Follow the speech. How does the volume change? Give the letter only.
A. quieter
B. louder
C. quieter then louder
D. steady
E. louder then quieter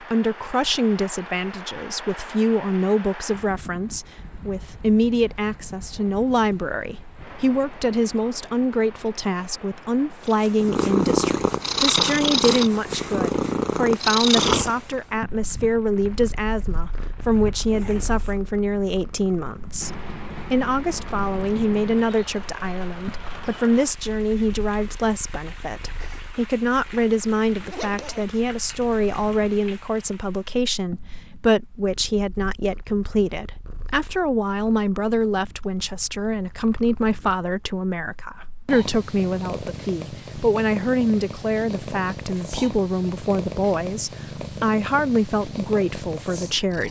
D.